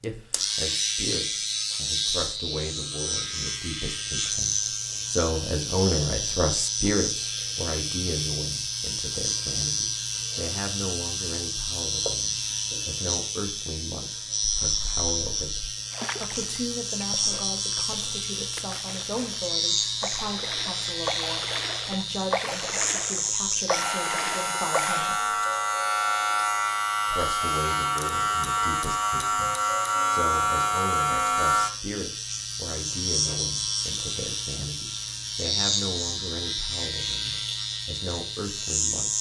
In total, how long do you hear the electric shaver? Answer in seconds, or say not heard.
39 s.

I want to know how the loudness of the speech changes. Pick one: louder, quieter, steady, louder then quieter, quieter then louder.
quieter.